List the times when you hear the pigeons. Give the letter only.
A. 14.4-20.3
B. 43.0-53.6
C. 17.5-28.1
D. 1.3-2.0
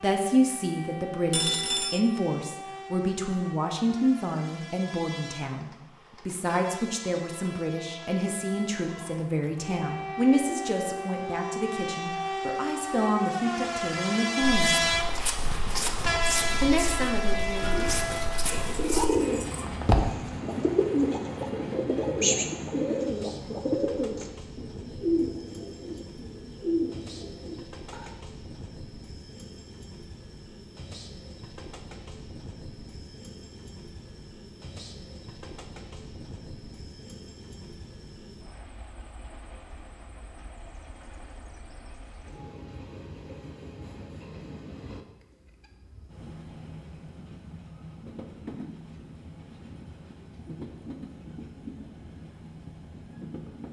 C.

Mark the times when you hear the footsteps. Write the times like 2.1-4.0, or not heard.
14.4-20.3.